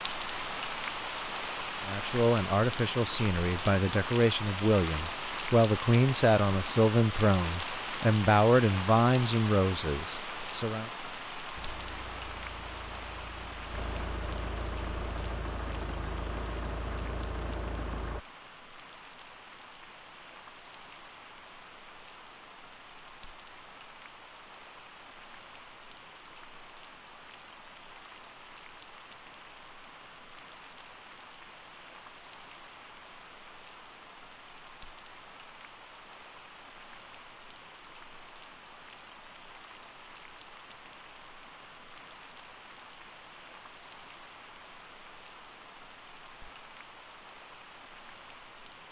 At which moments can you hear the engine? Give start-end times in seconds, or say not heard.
11.6-18.2.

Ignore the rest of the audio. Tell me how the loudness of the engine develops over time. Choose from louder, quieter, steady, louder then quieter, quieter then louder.
louder.